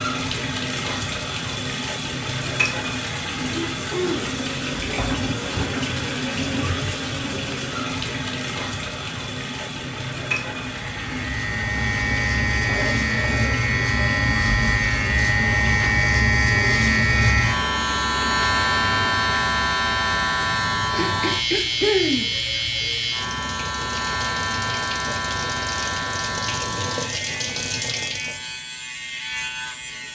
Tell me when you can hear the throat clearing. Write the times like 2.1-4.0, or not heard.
3.5-4.3, 12.8-13.7, 20.9-22.3.